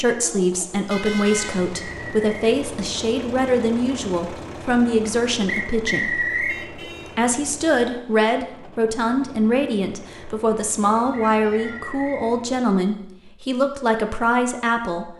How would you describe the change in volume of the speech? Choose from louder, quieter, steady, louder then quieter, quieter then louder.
steady.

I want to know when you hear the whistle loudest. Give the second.
6 s.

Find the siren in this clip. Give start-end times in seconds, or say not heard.
not heard.